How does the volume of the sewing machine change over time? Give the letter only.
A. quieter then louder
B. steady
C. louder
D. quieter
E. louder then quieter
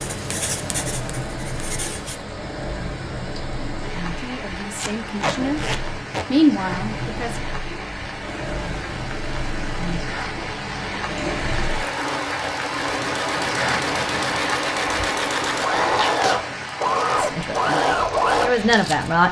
C.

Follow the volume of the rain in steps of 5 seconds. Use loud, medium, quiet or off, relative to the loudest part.
medium, medium, loud, loud.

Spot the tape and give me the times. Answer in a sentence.
You can hear the tape from 4.8 to 6.2 s and from 15.9 to 16.4 s.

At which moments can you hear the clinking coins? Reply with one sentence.
The clinking coins can't be heard in this clip.